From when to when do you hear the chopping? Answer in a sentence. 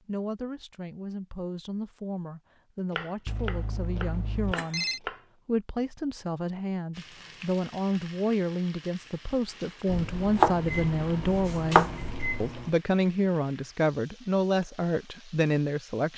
The chopping can be heard from 2.9 to 5.2 s and from 9.8 to 12.5 s.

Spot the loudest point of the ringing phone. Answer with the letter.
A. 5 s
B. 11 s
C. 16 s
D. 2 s
A.